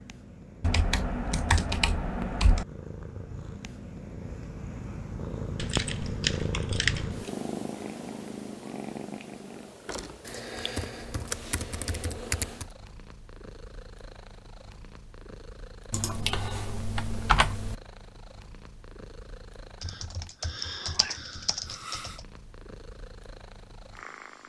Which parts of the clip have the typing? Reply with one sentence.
The typing can be heard from 0.6 to 2.6 s, from 5.5 to 7.3 s, from 10.2 to 12.7 s, from 15.9 to 17.8 s and from 19.8 to 22.2 s.